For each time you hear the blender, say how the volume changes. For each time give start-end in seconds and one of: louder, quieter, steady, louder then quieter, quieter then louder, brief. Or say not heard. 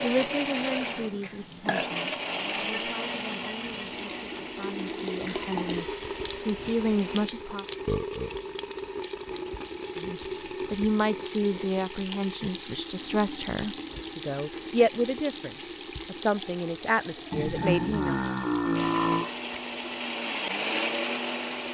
0.0-7.3 quieter
18.7-21.6 brief.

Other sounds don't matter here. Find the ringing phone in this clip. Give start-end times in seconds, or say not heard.
not heard.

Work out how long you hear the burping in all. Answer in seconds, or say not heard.
3 s.